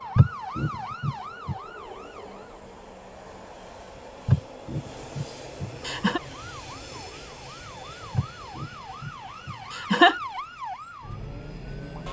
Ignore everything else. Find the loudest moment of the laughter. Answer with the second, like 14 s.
10 s.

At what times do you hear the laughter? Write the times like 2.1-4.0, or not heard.
0.1-1.6, 4.2-6.2, 8.2-10.2.